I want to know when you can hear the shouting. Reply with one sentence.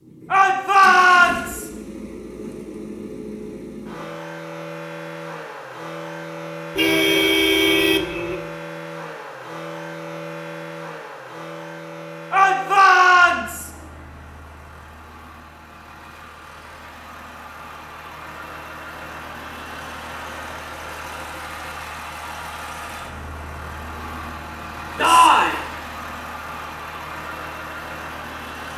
The shouting can be heard from 0.3 to 1.6 s, from 12.3 to 13.7 s and from 24.9 to 25.6 s.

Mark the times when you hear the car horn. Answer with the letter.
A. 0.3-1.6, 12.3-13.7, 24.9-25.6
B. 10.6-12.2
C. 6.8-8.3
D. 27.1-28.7
C.